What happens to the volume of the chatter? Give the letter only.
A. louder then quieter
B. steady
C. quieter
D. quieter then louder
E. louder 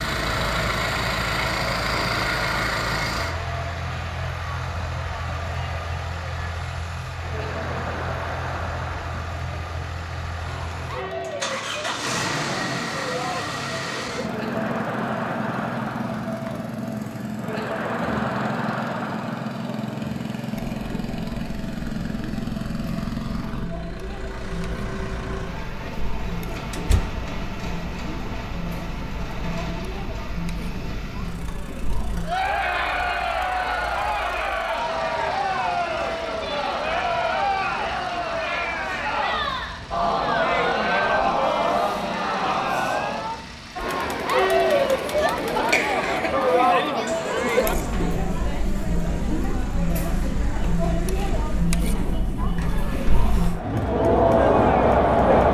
E.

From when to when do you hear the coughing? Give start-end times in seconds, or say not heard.
45.7-46.4.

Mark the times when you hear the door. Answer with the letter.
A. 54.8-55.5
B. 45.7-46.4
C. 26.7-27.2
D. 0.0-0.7
C.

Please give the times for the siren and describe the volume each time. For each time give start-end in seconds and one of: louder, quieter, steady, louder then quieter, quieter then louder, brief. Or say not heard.
not heard.